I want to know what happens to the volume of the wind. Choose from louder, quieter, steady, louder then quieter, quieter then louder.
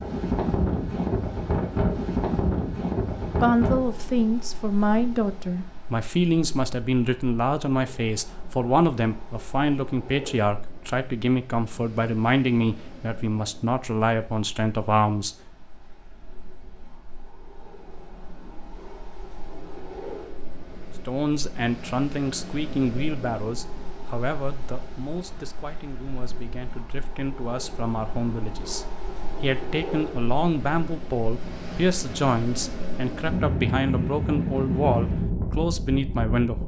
quieter then louder.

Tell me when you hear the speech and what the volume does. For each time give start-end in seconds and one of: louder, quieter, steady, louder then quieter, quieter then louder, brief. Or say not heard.
3.4-15.3 steady
21.1-36.6 quieter then louder.